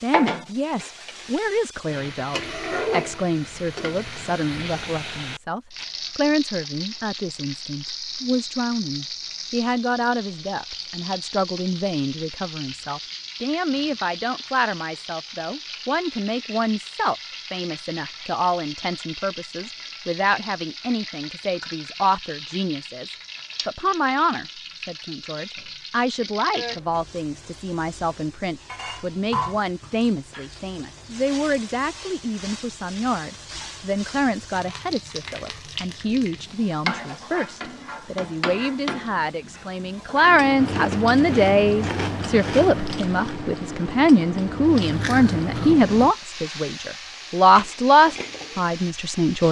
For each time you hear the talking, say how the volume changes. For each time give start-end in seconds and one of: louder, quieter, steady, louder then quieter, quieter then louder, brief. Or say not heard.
0.0-49.4 louder.